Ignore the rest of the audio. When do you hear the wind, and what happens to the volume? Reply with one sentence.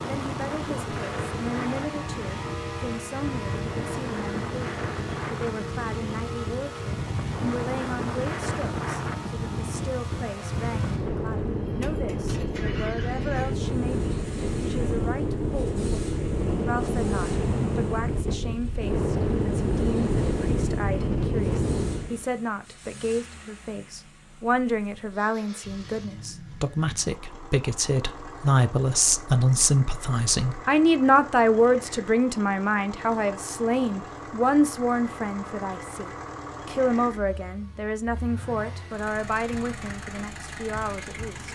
The wind can be heard from 0.0 to 22.2 s, getting louder.